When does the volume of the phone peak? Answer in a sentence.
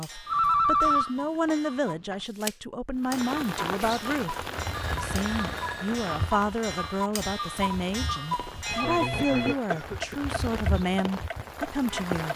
The volume of the phone peaks at 1 second.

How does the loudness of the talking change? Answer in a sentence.
The volume of the talking stays about the same.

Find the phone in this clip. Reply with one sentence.
The phone can be heard from 0.3 to 2.1 s, from 4.7 to 6.0 s and from 8.3 to 9.6 s.